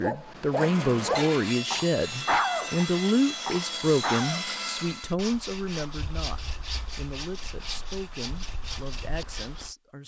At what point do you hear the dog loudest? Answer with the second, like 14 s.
2 s.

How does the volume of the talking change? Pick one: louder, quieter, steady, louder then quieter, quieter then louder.
quieter.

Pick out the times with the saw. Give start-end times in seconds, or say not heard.
0.5-9.8.